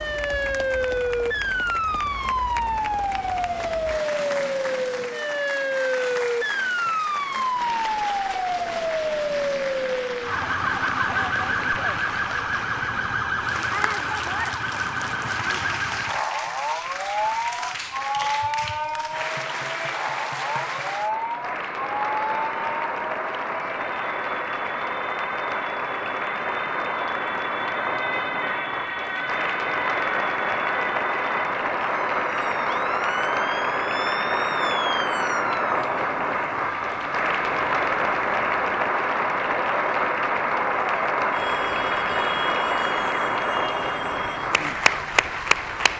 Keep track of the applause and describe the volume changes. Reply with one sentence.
The loudness of the applause goes up.